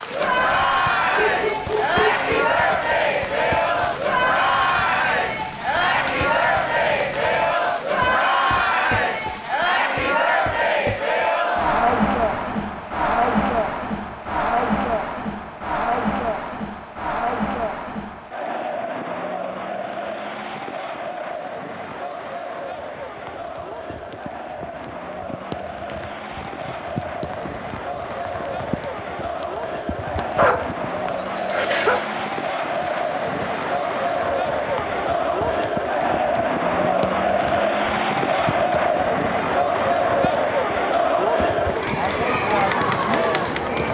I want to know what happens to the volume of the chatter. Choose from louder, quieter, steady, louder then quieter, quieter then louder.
quieter then louder.